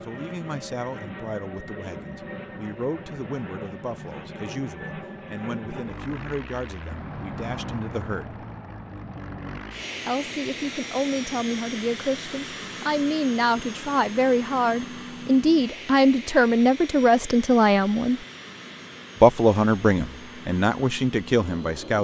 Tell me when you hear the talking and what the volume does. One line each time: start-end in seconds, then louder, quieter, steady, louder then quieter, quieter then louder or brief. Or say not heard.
0.0-8.4 steady
10.1-18.2 louder
19.2-21.9 brief.